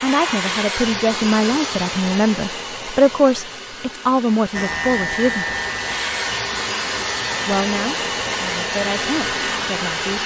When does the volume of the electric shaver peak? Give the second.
5 s.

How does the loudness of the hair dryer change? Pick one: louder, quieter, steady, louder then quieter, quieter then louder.
quieter then louder.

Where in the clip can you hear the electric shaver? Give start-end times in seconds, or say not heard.
4.5-10.2.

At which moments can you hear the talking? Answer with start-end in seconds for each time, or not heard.
0.0-5.5, 7.5-10.2.